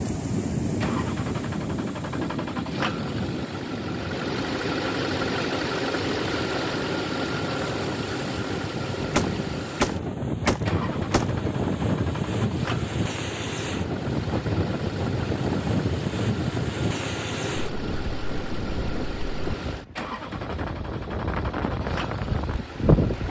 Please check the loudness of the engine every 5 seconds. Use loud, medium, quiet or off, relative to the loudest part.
loud, loud, medium, medium, medium.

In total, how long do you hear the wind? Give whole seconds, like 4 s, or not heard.
23 s.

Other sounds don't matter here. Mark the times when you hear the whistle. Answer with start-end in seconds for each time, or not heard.
not heard.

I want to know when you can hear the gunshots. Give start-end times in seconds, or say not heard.
9.1-11.3.